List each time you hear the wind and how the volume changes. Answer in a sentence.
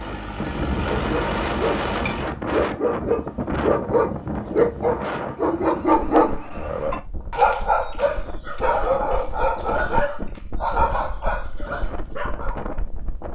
You can hear the wind from 0.0 to 13.3 s, getting quieter.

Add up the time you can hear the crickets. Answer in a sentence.
You can't hear the crickets here.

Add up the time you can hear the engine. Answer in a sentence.
You can hear the engine for 2 seconds altogether.